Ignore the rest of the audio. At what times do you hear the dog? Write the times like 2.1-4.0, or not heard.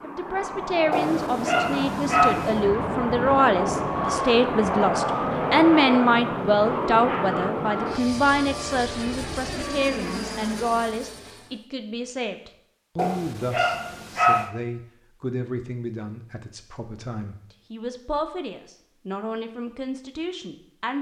0.9-2.7, 12.9-14.5.